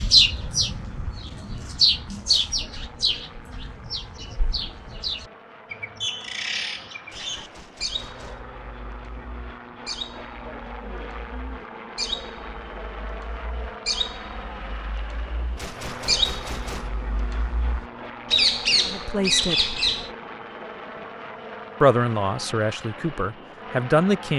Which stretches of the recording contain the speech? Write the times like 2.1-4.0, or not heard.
18.9-19.8, 21.8-24.3.